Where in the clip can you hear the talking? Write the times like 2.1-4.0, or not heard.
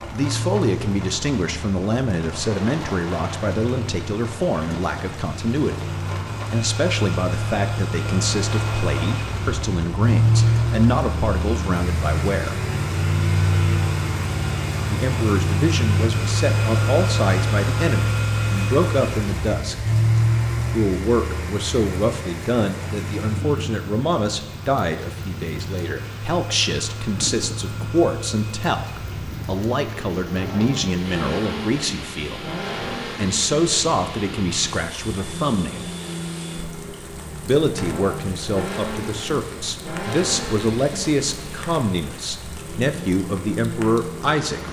0.0-5.9, 6.5-12.6, 14.8-19.8, 20.6-35.9, 37.5-44.6.